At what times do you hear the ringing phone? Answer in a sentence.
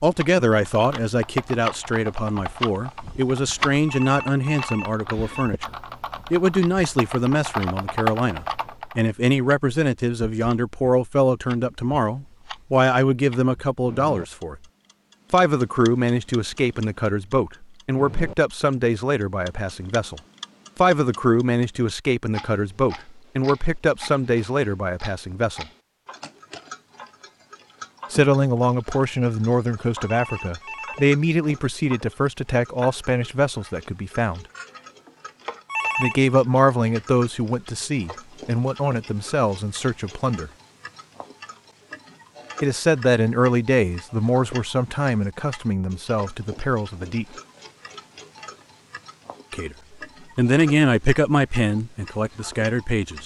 You can hear the ringing phone from 3.9 to 5.5 s, from 30.0 to 31.1 s and from 35.6 to 36.3 s.